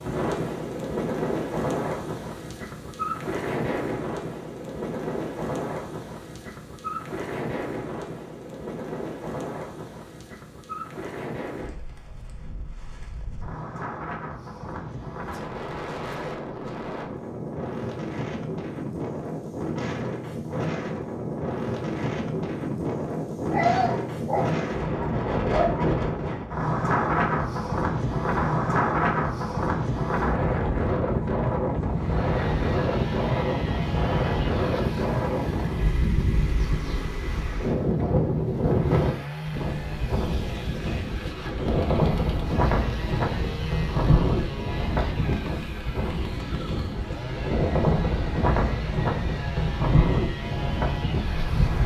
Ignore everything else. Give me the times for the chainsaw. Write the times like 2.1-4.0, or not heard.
31.9-51.8.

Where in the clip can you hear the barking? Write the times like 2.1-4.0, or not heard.
23.5-26.4.